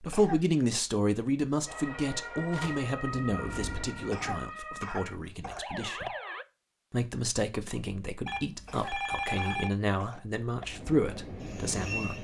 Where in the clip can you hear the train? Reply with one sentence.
You can hear the train from 1.6 to 4.5 s and from 10.6 to 12.1 s.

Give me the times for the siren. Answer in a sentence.
The siren can be heard from 1.6 to 6.5 s.